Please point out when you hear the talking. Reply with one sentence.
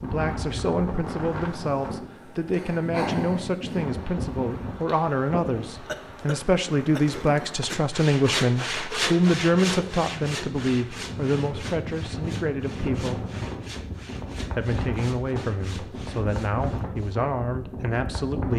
The talking can be heard from 0.0 to 13.2 s and from 14.3 to 18.5 s.